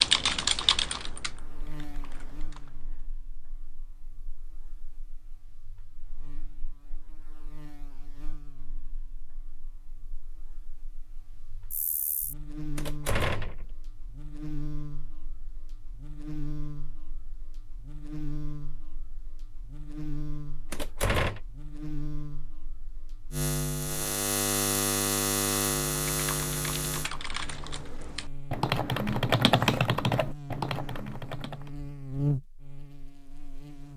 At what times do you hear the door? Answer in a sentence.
You can hear the door from 12.8 to 13.7 s and from 20.7 to 21.4 s.